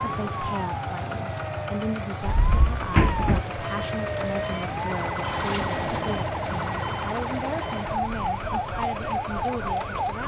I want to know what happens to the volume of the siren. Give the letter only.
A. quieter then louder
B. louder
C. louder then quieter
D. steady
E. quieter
B.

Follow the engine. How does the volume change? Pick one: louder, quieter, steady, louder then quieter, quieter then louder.
steady.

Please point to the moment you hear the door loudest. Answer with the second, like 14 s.
3 s.